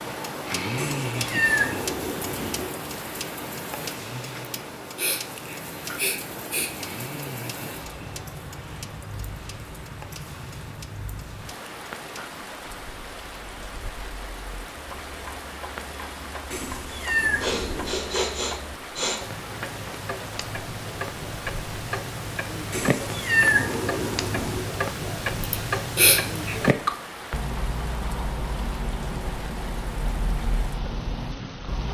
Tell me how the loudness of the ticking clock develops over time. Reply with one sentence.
The volume of the ticking clock goes down, then up.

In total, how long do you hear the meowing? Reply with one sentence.
You can hear the meowing for 5 seconds altogether.